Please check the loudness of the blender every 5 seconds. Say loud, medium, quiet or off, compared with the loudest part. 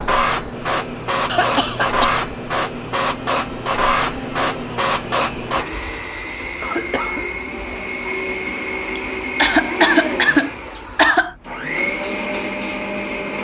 medium, loud, loud.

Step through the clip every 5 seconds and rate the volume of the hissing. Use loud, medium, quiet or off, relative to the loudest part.
loud, medium, quiet.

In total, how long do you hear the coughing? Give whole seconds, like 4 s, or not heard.
4 s.